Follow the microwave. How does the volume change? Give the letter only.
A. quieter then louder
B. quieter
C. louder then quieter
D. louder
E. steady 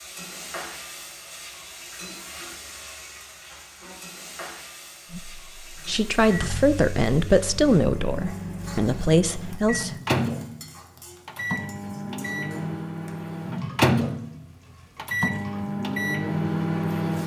D.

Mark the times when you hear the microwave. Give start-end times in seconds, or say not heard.
5.8-17.2.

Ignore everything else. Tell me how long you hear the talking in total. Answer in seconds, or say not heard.
5 s.